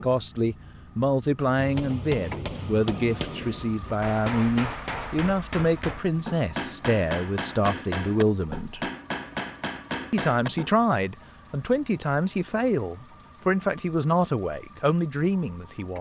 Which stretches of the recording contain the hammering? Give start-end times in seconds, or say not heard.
1.6-10.8.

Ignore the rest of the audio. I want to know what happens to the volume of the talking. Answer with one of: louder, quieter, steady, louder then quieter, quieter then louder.
steady.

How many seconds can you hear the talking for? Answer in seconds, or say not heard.
15 s.